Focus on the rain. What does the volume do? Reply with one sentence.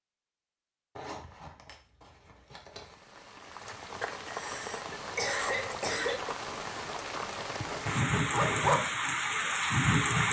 The volume of the rain goes up.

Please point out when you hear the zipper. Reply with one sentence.
You can hear the zipper from 0.9 to 3.0 s and from 7.7 to 8.8 s.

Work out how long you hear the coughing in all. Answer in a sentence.
The coughing can be heard for 2 seconds in total.